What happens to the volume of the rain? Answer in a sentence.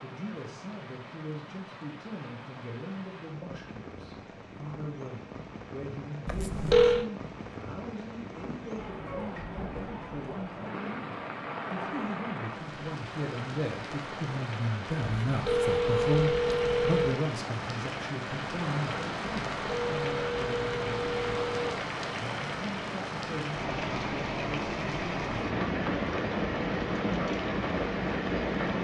The volume of the rain goes up.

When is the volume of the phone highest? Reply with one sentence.
The volume of the phone peaks at 7 seconds.